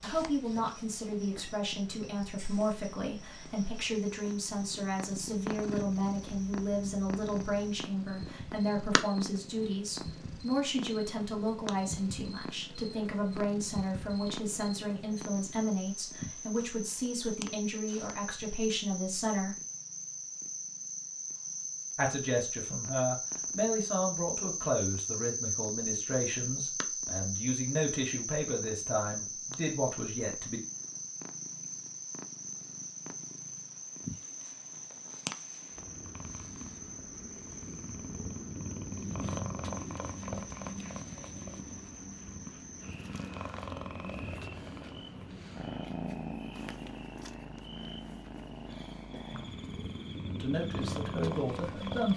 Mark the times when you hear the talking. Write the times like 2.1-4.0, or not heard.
0.0-19.6, 21.9-30.6, 50.2-52.1.